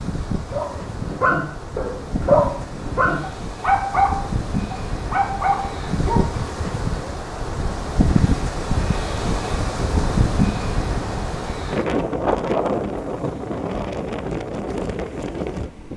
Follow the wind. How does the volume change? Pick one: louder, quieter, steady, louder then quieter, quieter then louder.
louder.